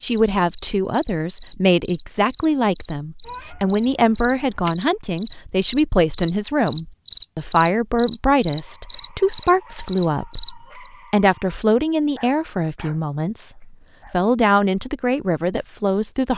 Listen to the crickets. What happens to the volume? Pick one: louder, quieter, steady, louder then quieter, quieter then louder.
louder.